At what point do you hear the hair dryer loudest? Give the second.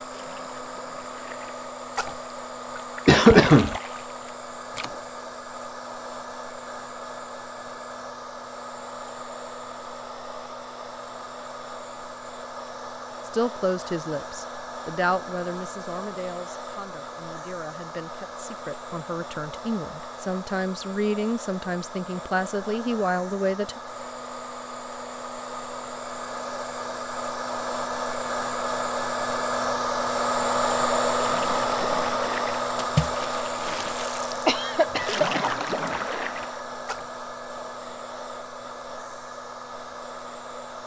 31 s.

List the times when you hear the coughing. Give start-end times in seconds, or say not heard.
3.0-3.8, 34.5-35.5.